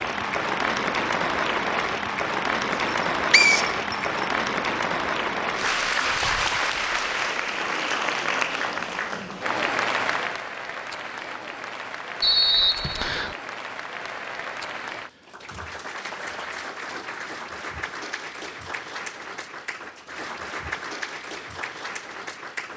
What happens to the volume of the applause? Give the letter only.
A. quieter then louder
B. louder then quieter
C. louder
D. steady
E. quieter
E.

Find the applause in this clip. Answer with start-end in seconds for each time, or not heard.
0.0-22.7.